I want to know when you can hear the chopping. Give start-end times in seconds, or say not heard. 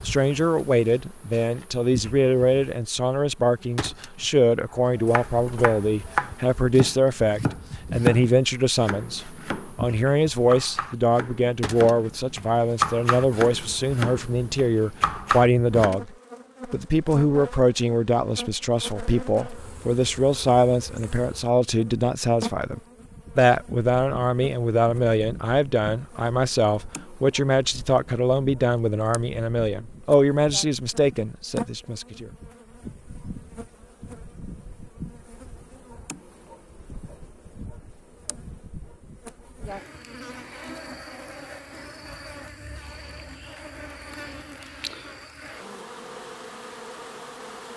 5.0-15.9.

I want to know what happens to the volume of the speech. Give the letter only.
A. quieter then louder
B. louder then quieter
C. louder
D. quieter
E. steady
E.